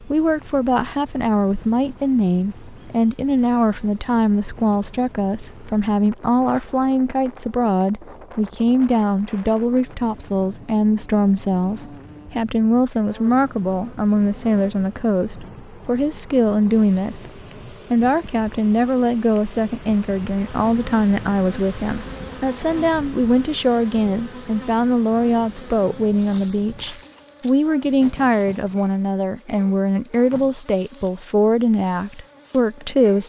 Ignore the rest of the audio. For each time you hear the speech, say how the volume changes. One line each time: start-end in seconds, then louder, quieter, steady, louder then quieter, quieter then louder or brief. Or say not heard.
0.0-33.2 steady.